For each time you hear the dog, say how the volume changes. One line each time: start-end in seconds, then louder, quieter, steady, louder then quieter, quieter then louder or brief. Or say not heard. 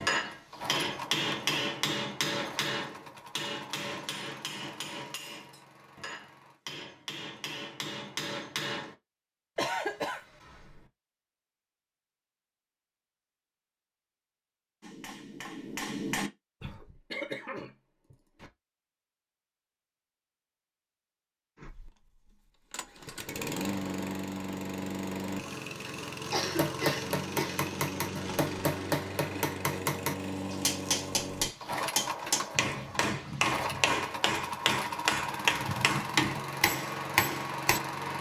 not heard.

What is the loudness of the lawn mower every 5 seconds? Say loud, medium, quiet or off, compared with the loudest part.
medium, quiet, off, off, loud, loud, loud, loud.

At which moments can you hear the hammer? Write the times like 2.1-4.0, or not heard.
0.0-8.9, 14.8-16.8, 26.6-37.8.